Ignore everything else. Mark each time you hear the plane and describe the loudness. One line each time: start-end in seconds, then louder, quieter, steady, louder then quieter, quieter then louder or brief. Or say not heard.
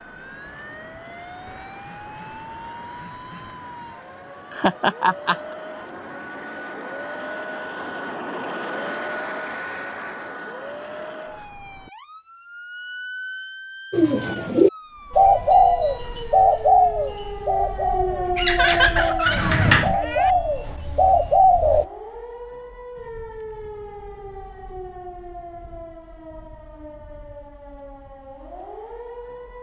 0.0-11.5 louder.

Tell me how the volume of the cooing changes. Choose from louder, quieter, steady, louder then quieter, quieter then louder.
quieter then louder.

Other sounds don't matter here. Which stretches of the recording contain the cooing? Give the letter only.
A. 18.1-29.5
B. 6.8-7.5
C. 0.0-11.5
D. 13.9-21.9
D.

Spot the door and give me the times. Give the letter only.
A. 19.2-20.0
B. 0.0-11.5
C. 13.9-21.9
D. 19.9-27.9
A.